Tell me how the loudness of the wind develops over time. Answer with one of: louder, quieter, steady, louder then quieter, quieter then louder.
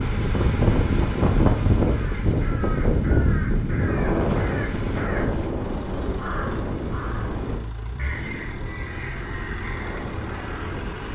quieter.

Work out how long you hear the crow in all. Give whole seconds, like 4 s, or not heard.
9 s.